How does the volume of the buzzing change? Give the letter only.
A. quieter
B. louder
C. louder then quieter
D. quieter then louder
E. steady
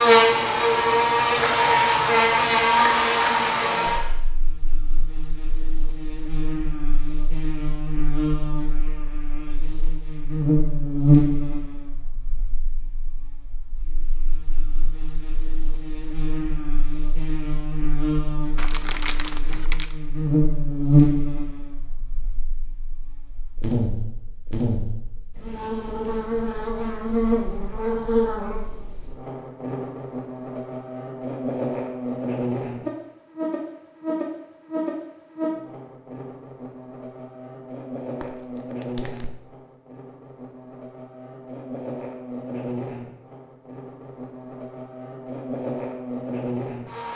A.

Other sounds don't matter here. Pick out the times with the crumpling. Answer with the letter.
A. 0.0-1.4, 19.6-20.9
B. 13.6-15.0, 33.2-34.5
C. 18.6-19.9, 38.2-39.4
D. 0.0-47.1
C.